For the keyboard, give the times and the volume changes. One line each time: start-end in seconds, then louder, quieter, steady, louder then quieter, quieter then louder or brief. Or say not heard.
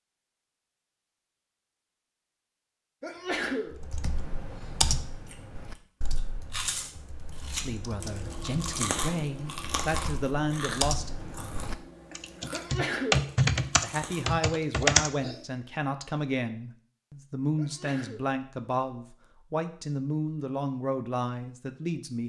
3.7-15.3 quieter then louder.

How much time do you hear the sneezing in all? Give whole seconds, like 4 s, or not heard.
2 s.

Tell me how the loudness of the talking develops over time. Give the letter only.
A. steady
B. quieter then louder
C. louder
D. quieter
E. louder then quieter
A.